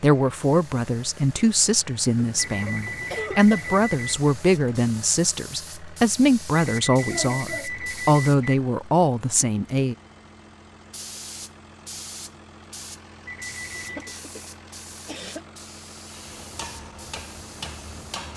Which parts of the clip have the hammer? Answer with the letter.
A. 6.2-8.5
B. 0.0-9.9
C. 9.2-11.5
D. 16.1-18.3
D.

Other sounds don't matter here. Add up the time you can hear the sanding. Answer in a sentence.
You can't hear the sanding here.